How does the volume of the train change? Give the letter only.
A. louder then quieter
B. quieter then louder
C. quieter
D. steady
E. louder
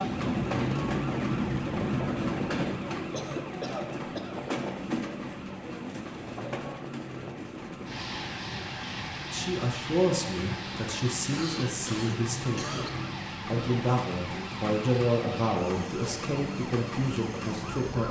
C.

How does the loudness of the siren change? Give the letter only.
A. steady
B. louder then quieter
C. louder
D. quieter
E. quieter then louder
E.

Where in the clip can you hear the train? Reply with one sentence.
The train can be heard from 0.0 to 18.0 s.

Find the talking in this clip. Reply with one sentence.
You can hear the talking from 9.3 to 18.0 s.